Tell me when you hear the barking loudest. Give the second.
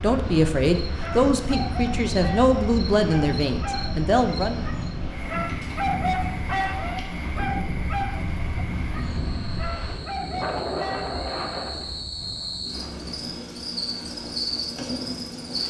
6 s.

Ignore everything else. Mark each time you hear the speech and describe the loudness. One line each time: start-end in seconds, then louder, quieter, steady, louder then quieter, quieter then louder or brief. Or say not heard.
0.0-4.7 steady.